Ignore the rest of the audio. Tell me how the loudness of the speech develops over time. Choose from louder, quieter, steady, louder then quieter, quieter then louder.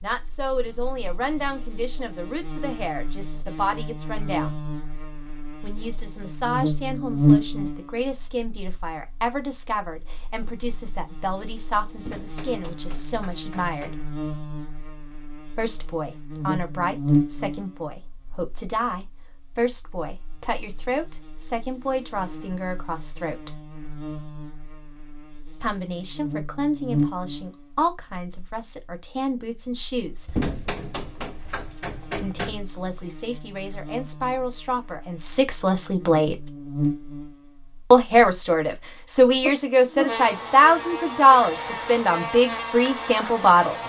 louder.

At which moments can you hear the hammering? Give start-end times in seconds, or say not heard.
11.9-14.1, 30.2-32.6.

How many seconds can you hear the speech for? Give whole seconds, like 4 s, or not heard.
36 s.